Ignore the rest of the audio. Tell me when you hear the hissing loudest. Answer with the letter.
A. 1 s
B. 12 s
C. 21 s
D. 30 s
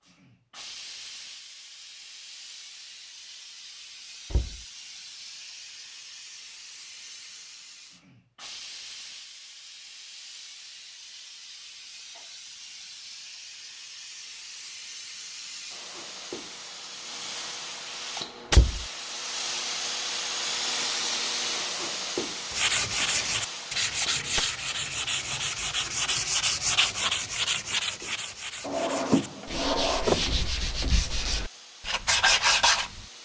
C.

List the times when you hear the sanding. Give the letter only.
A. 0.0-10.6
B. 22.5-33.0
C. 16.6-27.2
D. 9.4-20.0
B.